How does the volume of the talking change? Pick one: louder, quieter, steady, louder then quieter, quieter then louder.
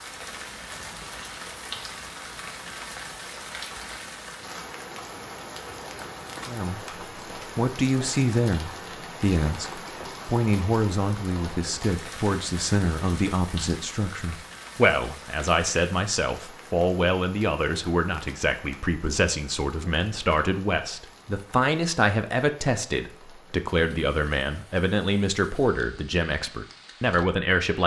steady.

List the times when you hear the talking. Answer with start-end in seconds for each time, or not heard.
6.5-27.8.